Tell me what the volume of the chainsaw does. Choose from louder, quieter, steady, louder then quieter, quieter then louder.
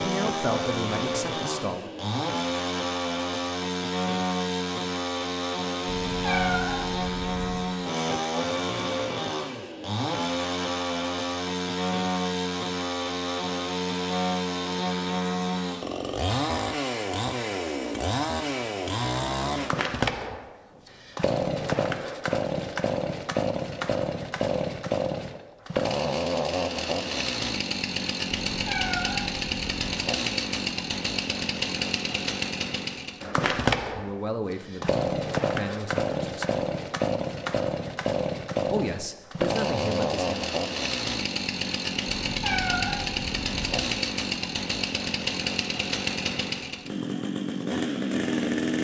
steady.